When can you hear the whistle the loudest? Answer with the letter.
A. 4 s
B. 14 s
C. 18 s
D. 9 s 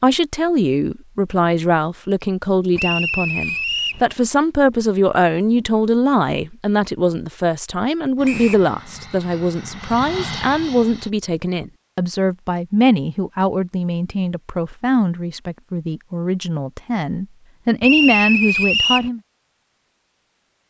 C.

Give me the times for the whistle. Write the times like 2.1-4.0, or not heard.
2.8-4.0, 8.2-8.7, 17.8-19.1.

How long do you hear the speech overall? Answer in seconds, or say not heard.
19 s.